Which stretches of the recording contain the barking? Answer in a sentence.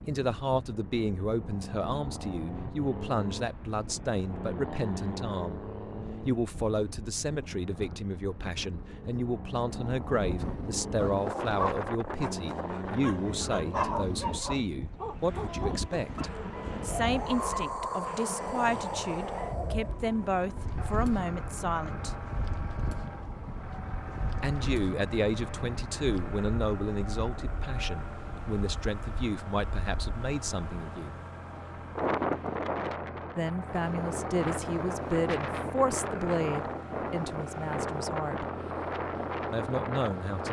The barking can be heard from 10.9 to 16.3 s.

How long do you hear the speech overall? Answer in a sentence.
The speech can be heard for 34 seconds in total.